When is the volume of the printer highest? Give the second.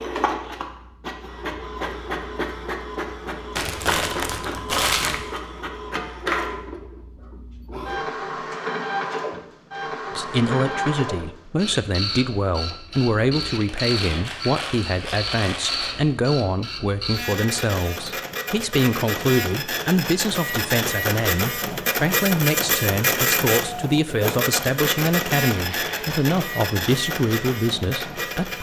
23 s.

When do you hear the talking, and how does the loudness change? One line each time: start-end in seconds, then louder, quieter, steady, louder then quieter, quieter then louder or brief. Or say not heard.
10.2-28.5 steady.